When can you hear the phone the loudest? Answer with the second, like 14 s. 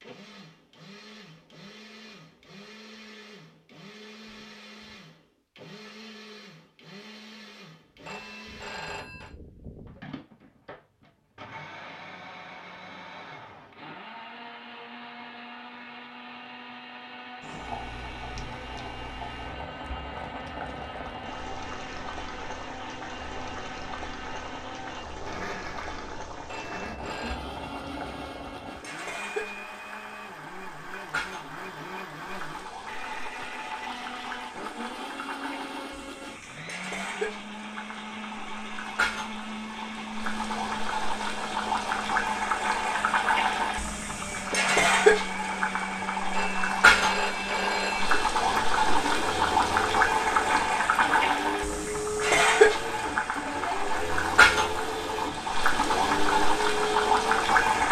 47 s.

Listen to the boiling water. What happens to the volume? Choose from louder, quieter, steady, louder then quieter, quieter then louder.
louder.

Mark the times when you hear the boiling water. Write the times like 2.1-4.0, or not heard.
17.4-57.8.